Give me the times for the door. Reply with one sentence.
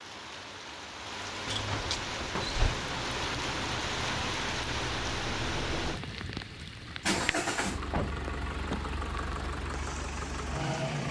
The door can be heard from 1.4 to 2.8 s and from 7.9 to 8.9 s.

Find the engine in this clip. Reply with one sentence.
You can hear the engine from 2.6 to 11.0 s.